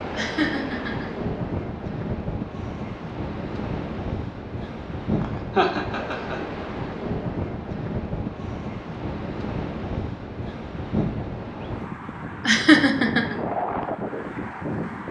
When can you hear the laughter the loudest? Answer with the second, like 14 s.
13 s.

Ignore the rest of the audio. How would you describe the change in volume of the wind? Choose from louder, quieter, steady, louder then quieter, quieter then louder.
steady.